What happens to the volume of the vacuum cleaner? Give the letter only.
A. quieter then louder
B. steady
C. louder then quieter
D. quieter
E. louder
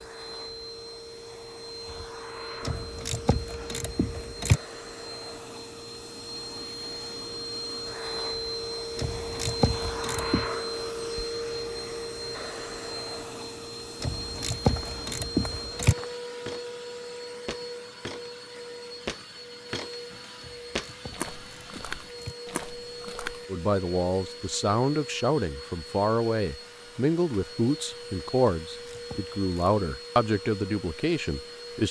C.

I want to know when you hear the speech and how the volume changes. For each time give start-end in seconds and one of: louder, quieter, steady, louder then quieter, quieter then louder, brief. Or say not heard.
23.4-31.8 steady.